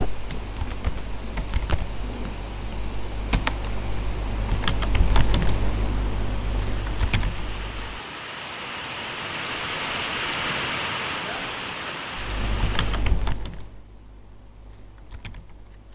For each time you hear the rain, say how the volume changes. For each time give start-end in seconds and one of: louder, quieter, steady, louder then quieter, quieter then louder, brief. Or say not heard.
0.0-13.2 louder.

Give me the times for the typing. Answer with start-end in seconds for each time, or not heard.
0.0-8.0, 12.2-15.9.